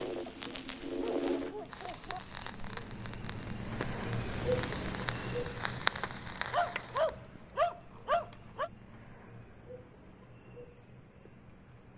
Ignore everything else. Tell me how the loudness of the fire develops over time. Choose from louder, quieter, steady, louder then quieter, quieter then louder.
quieter then louder.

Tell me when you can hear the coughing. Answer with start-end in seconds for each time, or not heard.
not heard.